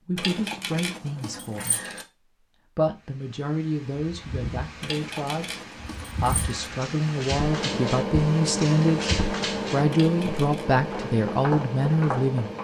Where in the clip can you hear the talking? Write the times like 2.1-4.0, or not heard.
0.1-1.8, 2.8-12.5.